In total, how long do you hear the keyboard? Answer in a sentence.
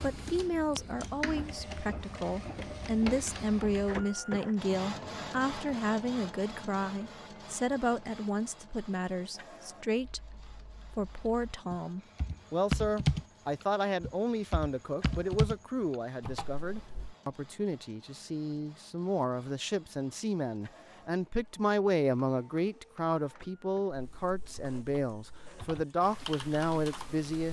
The keyboard can be heard for 11 seconds in total.